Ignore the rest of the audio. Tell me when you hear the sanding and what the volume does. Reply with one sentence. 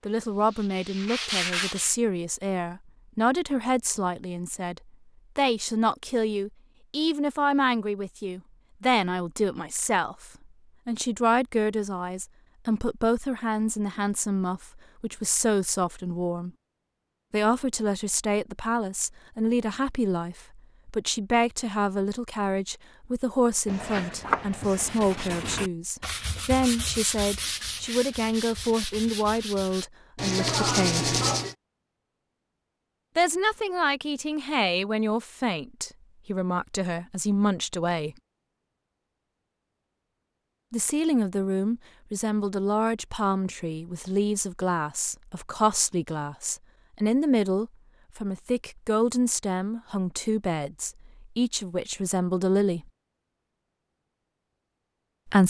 You can hear the sanding briefly from 0.0 to 1.9 s; and from 23.6 to 31.6 s, getting quieter then louder.